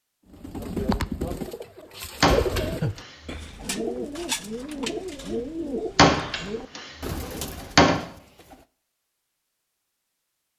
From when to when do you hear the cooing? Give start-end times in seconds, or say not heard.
0.3-8.7.